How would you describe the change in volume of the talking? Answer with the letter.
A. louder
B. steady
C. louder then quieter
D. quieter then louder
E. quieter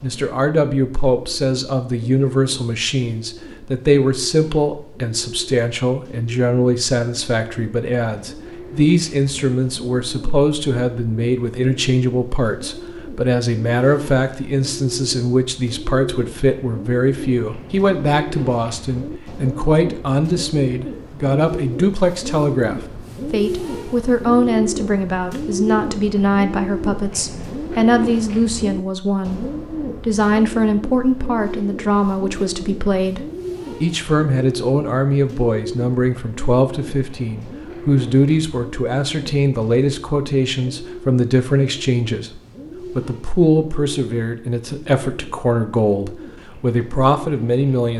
B.